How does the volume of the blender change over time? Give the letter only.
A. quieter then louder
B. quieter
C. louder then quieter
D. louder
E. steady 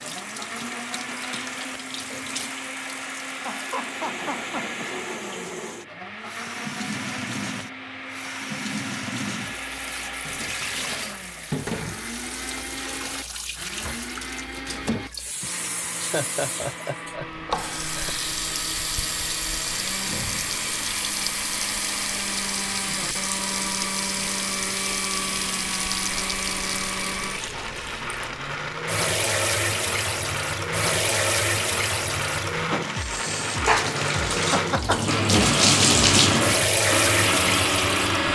D.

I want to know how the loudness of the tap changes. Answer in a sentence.
The loudness of the tap goes up.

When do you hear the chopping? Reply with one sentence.
The chopping can't be heard in this clip.